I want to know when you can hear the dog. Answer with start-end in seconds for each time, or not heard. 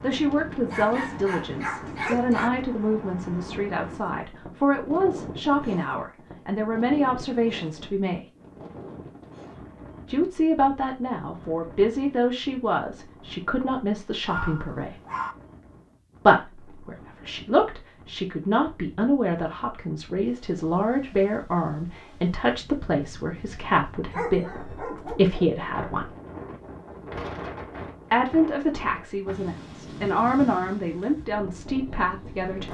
0.7-2.5, 14.2-15.3, 24.1-25.6.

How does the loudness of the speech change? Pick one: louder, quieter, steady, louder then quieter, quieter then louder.
steady.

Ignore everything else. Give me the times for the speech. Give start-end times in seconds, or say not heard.
0.0-8.2, 10.1-14.9, 16.2-26.1, 28.1-32.7.